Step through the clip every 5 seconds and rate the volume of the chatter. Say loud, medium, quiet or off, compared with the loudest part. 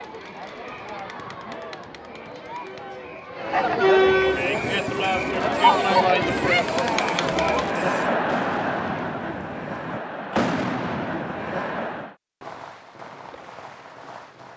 loud, loud, medium.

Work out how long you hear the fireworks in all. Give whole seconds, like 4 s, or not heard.
10 s.